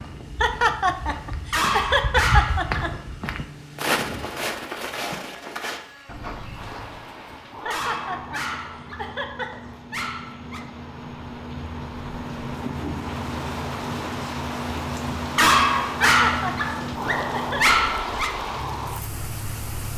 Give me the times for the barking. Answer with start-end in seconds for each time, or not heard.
1.5-3.0, 7.7-10.7, 15.3-18.4.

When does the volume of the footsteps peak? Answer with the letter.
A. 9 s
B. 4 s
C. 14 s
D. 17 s
B.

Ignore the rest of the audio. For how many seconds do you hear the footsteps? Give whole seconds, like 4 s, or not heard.
7 s.